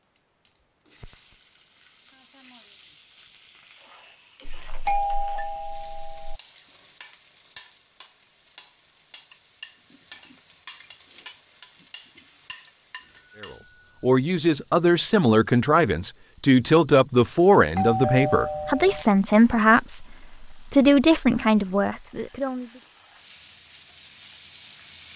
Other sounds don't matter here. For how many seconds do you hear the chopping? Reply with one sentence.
You can't hear the chopping here.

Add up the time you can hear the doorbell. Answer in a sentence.
The doorbell can be heard for 4 seconds in total.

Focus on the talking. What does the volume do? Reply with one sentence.
The loudness of the talking stays about the same.